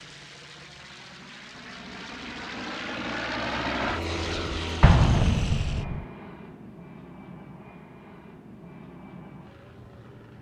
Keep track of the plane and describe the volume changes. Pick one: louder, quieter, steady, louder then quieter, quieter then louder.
louder then quieter.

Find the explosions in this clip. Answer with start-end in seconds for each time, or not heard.
4.8-6.0.